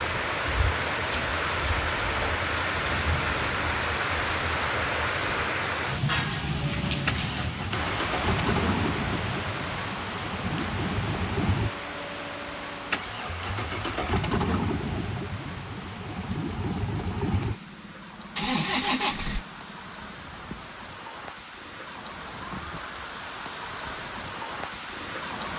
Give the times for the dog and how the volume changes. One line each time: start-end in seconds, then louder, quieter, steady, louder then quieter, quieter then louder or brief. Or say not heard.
not heard.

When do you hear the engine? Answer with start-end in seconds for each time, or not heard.
6.6-20.1.